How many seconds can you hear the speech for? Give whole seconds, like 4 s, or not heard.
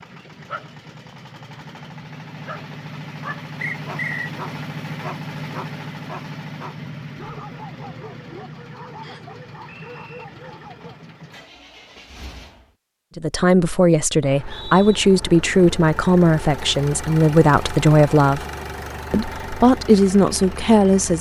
7 s.